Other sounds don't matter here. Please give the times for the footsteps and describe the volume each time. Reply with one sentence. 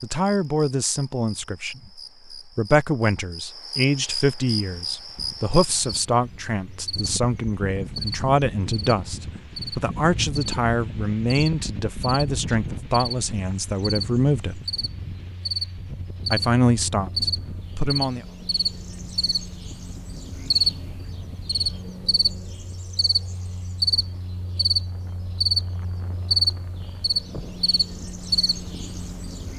The footsteps can't be heard in this clip.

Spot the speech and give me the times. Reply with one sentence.
The speech can be heard from 0.0 to 14.6 s and from 16.3 to 18.2 s.